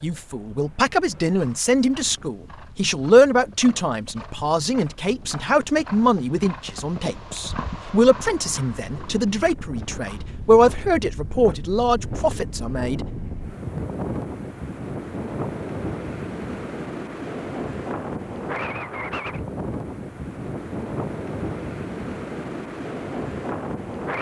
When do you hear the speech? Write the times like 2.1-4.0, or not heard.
0.0-13.1.